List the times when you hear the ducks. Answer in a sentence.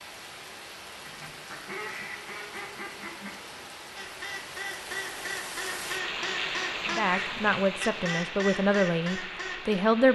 The ducks can be heard from 1.0 to 9.8 s.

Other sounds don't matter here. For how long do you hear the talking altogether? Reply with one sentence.
You can hear the talking for 3 seconds altogether.